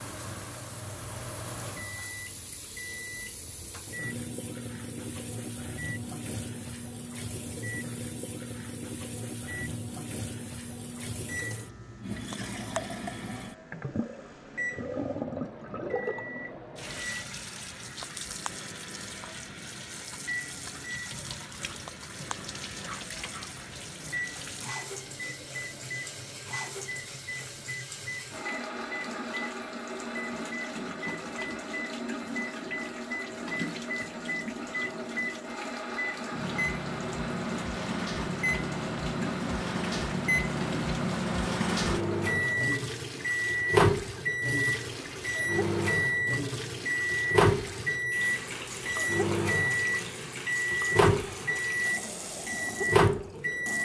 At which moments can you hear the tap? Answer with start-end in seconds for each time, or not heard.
0.0-53.8.